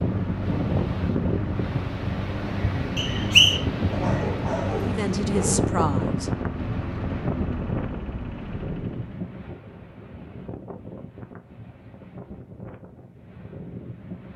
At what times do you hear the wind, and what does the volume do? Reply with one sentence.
The wind can be heard from 0.0 to 14.3 s, getting quieter.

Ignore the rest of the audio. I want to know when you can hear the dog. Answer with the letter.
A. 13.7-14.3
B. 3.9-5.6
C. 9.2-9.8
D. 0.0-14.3
B.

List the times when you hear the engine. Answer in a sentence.
The engine can be heard from 0.0 to 9.2 s.